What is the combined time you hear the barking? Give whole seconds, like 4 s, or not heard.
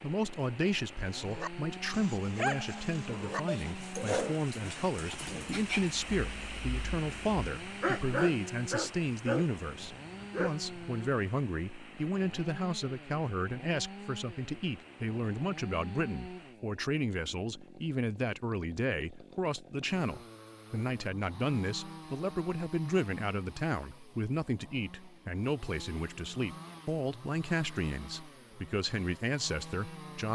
10 s.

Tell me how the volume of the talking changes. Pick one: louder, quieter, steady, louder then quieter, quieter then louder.
steady.